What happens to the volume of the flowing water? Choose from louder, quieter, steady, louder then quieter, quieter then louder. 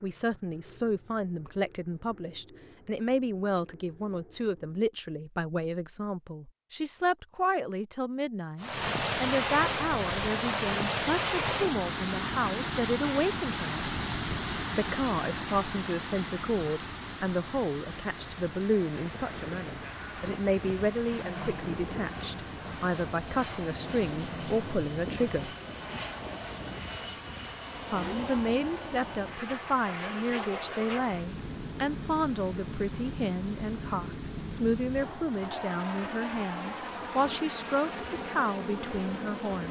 quieter.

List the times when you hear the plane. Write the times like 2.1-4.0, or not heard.
0.0-4.8, 17.9-39.6.